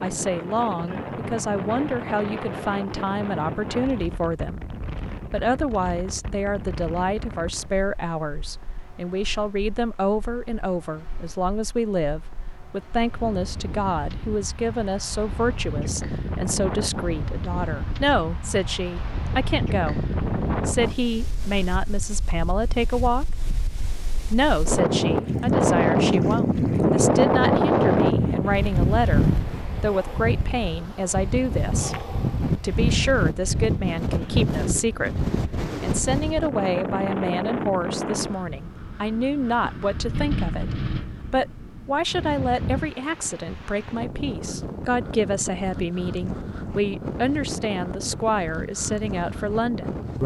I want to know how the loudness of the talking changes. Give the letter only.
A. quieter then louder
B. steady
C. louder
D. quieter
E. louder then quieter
B.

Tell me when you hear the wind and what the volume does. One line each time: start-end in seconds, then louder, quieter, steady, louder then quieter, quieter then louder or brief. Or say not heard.
0.0-50.2 louder then quieter.